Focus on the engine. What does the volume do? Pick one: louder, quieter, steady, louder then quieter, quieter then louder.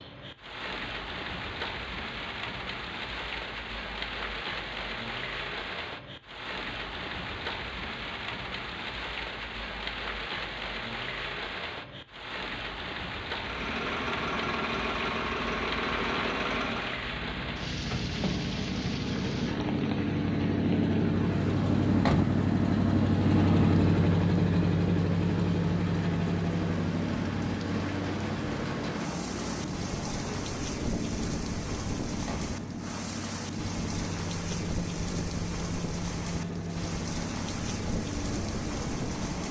louder then quieter.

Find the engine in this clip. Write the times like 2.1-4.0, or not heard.
13.3-39.4.